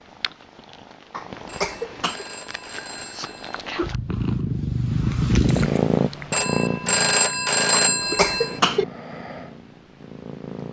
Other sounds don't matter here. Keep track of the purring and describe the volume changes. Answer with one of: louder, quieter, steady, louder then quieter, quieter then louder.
louder then quieter.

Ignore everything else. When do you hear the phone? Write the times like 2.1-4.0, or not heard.
1.4-3.6, 6.3-8.6.